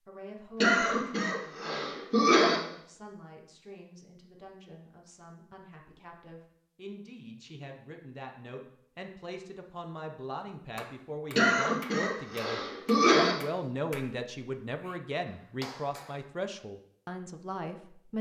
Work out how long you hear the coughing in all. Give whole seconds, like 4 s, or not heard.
4 s.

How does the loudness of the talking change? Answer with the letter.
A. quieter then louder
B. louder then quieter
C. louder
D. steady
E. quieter
C.